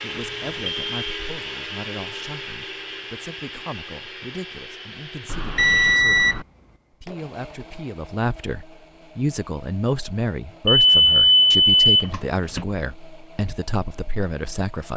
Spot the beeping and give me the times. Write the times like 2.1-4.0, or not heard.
0.1-0.9, 5.2-6.5, 10.7-12.7.